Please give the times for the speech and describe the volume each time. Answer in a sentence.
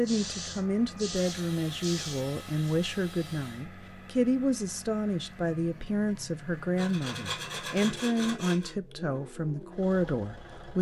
You can hear the speech from 0.0 to 10.7 s, at a steady volume.